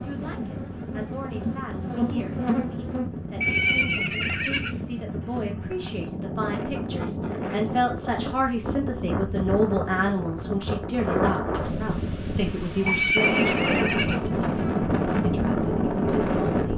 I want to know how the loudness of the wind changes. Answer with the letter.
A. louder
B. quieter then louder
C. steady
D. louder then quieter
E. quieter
A.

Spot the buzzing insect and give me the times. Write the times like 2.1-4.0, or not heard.
0.0-3.9.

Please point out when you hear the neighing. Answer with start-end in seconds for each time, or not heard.
3.4-4.8, 12.8-14.2.